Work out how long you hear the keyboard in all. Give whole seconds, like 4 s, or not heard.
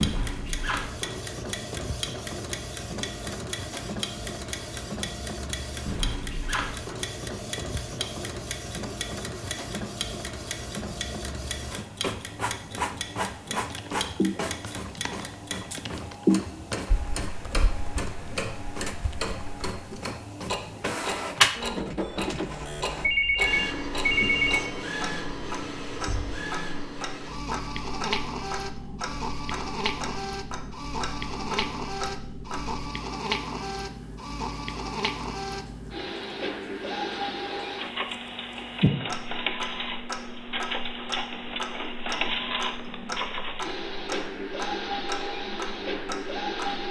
6 s.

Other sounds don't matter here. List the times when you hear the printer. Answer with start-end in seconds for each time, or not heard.
0.0-46.8.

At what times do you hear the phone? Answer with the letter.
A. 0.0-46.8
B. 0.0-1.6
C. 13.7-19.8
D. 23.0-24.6
D.